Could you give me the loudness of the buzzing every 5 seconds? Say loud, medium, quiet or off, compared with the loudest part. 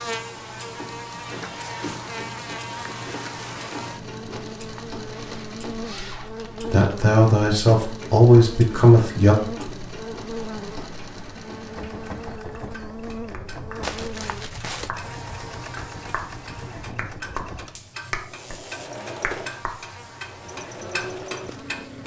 loud, loud, loud, medium, medium.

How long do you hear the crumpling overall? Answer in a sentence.
You can hear the crumpling for 4 seconds altogether.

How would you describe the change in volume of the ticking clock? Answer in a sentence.
The loudness of the ticking clock goes up.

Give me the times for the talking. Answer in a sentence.
The talking can be heard from 6.7 to 9.3 s.